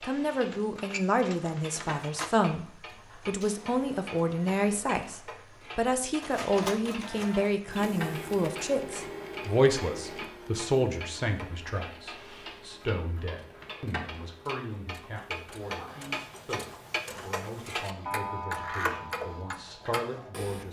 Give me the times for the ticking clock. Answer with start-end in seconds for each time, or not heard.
0.0-20.6.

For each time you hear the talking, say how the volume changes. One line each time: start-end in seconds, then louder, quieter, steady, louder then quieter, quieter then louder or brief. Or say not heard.
0.0-20.6 quieter.